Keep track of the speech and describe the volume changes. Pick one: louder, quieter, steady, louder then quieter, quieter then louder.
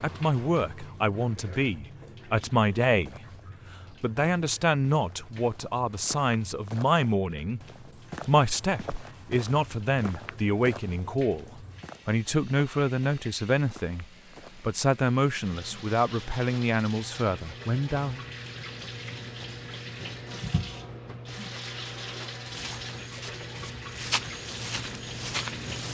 steady.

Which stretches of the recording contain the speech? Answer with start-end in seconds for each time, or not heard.
0.0-3.2, 3.9-7.6, 8.2-18.2.